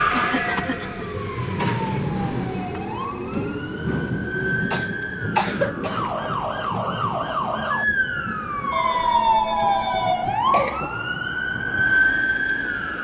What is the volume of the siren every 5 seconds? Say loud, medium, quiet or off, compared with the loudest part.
medium, loud, loud.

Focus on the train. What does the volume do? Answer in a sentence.
The volume of the train goes down.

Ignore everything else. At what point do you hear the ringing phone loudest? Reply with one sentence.
The volume of the ringing phone peaks at 10 seconds.